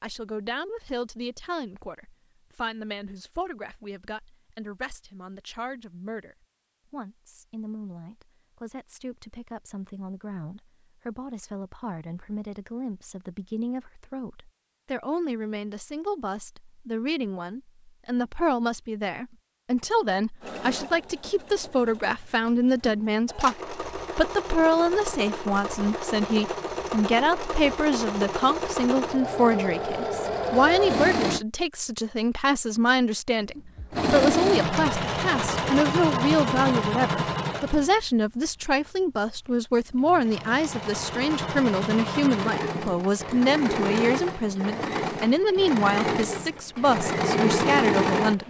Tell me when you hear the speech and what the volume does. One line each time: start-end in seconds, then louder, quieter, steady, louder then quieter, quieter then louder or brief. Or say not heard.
0.0-48.4 louder.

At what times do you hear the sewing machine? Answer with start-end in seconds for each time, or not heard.
20.4-31.4, 33.8-48.4.